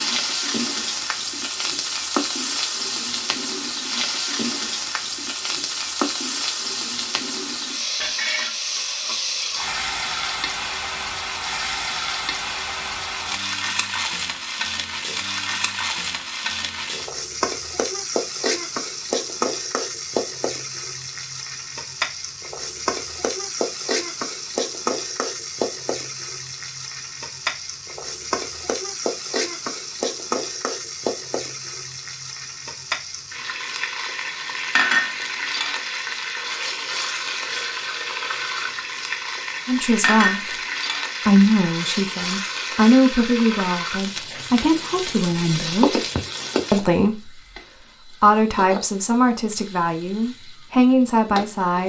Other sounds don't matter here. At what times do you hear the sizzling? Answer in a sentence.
The sizzling can be heard from 0.0 to 51.8 s.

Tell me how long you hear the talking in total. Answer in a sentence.
The talking can be heard for 11 seconds in total.